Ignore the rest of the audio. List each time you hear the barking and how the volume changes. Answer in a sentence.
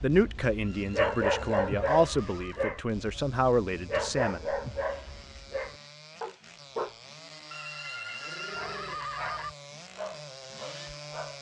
The barking can be heard from 0.0 to 7.0 s, getting quieter; and briefly from 8.6 to 11.3 s.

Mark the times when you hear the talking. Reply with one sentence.
The talking can be heard from 0.0 to 4.4 s.